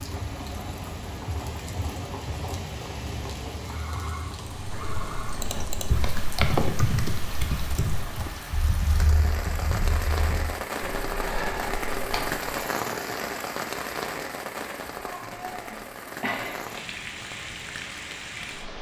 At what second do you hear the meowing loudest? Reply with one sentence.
The loudest moment of the meowing is at 16 seconds.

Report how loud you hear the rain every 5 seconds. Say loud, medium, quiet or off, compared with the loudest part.
medium, medium, loud, medium.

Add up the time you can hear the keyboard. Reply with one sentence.
You can hear the keyboard for 8 seconds altogether.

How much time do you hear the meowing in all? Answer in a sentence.
You can hear the meowing for 2 seconds altogether.